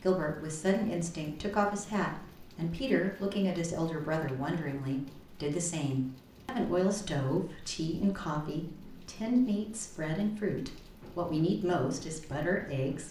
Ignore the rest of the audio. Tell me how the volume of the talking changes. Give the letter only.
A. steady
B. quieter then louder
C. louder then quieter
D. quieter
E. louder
A.